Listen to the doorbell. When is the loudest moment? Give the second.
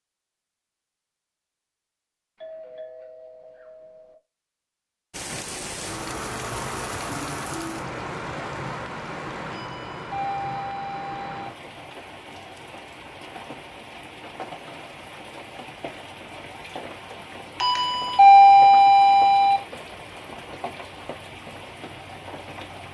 18 s.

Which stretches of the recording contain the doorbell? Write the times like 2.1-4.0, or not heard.
2.4-4.2, 9.5-11.5, 17.6-19.6.